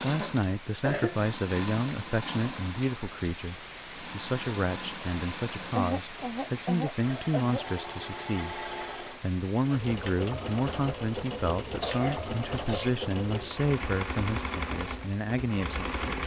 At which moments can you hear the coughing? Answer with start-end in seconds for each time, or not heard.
0.2-1.2, 5.7-7.7, 11.7-13.1.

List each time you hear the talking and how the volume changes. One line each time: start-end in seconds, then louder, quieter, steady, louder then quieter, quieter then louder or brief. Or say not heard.
0.0-16.2 steady.